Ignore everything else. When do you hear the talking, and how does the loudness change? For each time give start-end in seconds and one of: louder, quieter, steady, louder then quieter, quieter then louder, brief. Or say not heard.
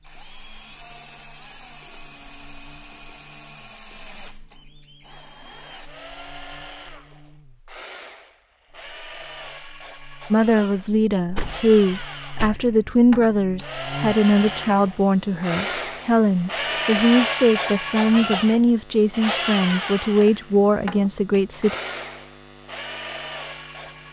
10.3-21.8 steady.